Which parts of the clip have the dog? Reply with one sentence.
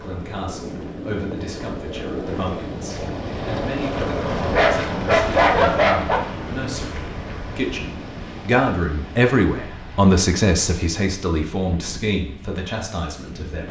You can hear the dog from 4.2 to 6.2 s.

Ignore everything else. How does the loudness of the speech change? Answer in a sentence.
The volume of the speech goes up, then down.